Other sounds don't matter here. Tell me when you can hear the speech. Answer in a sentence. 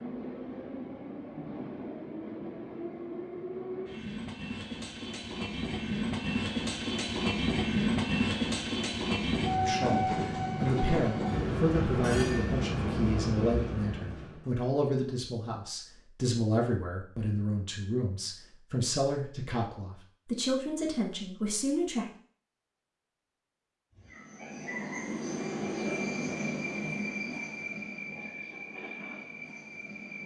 The speech can be heard from 9.5 to 22.1 s.